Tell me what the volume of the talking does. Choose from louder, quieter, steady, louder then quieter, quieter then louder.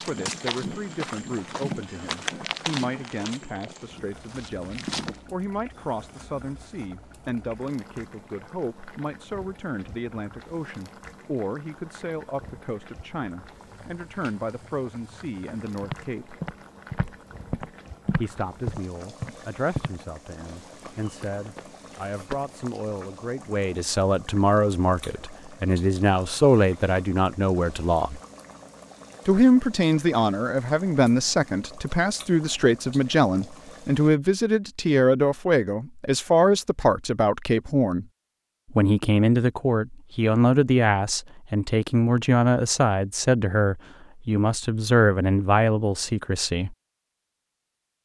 louder.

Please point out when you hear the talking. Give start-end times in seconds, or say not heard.
0.0-16.4, 18.1-28.2, 29.2-38.0, 38.7-46.8.